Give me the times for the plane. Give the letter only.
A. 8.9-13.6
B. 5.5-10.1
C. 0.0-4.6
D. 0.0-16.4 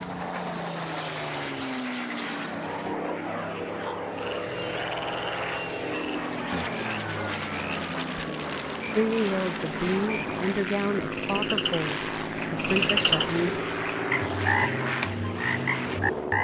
D.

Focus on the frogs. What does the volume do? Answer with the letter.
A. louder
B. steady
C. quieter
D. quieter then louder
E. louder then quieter
A.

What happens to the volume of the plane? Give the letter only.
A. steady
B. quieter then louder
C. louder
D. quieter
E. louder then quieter
A.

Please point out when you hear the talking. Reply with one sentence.
You can hear the talking from 8.9 to 13.6 s.